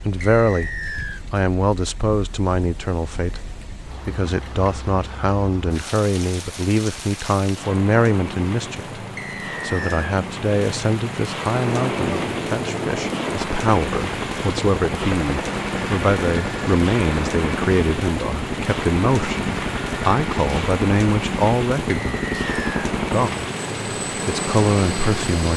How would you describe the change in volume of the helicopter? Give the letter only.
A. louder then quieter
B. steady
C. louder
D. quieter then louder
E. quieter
B.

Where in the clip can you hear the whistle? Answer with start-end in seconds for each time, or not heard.
0.2-1.2, 9.2-10.1, 21.9-22.9.